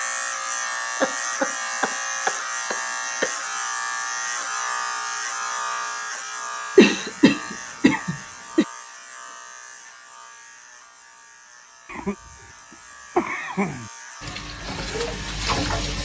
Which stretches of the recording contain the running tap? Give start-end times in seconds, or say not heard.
14.2-16.0.